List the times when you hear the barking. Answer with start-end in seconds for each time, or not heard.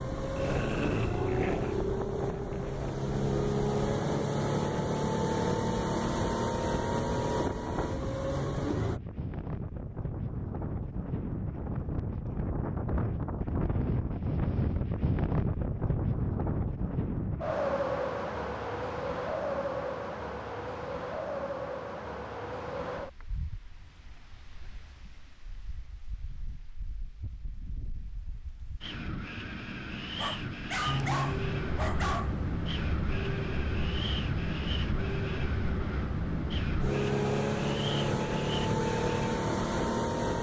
0.3-1.8, 30.1-32.4.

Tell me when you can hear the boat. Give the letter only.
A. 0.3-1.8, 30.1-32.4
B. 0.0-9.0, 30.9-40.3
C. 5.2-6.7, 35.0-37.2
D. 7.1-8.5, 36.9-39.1
B.